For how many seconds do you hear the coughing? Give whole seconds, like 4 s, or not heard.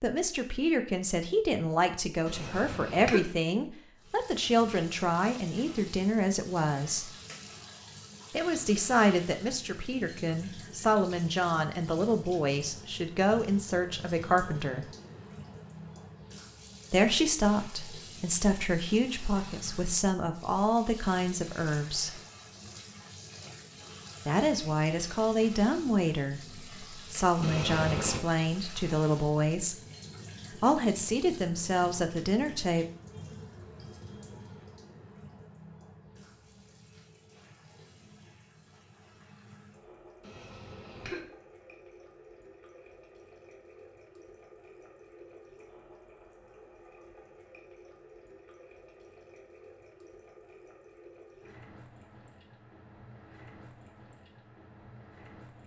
3 s.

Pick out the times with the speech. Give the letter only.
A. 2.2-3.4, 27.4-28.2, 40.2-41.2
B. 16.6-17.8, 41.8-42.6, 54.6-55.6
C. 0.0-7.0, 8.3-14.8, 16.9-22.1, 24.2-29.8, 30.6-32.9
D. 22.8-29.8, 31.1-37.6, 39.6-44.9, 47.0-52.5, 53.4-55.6
C.